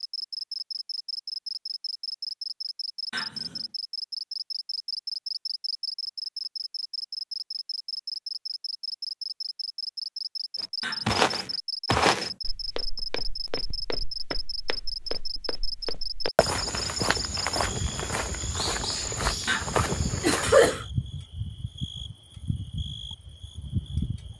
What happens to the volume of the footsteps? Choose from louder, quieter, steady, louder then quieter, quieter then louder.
quieter then louder.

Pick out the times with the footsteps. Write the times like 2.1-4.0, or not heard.
10.6-20.8.